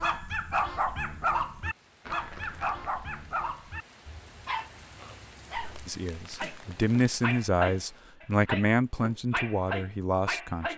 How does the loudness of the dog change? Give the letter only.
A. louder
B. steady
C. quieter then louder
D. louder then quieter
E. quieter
C.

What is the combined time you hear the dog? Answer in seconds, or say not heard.
11 s.